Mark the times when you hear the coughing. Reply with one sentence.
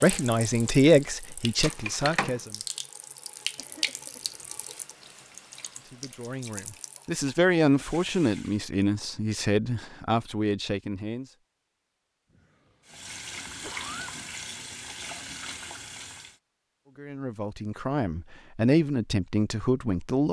The coughing can be heard from 3.5 to 4.7 s and from 12.3 to 14.2 s.